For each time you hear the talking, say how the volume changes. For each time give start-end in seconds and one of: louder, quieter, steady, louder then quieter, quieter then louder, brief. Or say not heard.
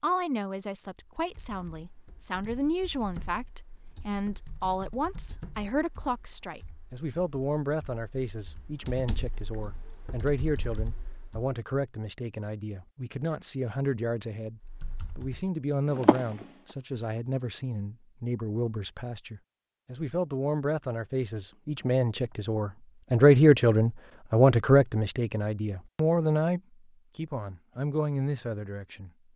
0.0-29.1 louder.